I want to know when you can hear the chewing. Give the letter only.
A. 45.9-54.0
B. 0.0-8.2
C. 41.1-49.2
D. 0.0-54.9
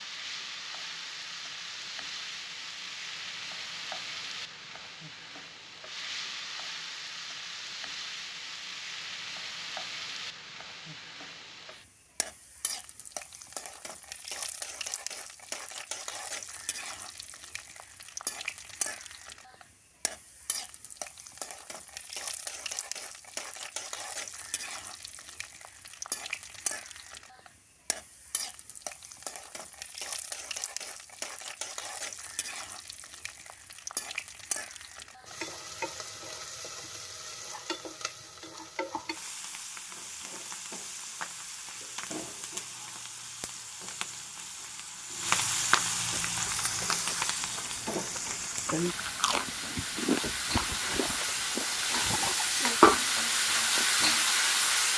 A.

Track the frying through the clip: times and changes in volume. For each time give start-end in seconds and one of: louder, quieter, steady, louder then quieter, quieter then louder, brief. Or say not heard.
0.0-54.9 louder.